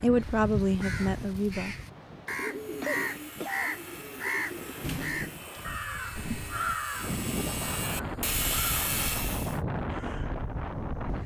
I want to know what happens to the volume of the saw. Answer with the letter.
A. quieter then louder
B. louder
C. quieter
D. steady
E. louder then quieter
B.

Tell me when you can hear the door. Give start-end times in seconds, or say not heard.
4.8-5.4.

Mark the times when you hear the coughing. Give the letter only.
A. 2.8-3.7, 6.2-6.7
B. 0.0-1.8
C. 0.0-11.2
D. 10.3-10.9
A.